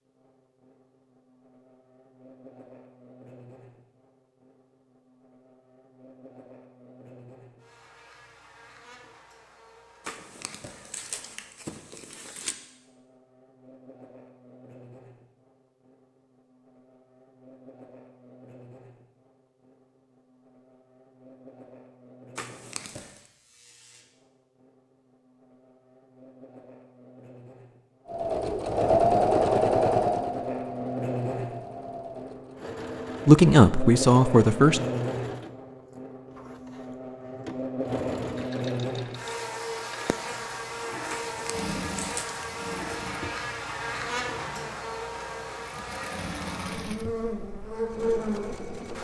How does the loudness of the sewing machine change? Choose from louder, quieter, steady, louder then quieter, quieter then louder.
quieter.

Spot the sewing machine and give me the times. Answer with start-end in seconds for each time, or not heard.
28.1-48.9.